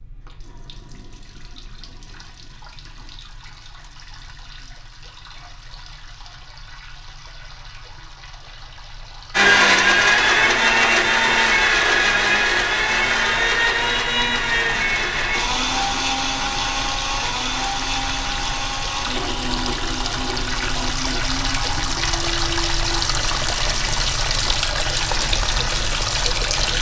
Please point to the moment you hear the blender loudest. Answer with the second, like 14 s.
10 s.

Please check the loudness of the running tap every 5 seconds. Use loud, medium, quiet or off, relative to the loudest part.
quiet, quiet, quiet, medium, loud, loud.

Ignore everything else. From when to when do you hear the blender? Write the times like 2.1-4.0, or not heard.
9.3-26.7.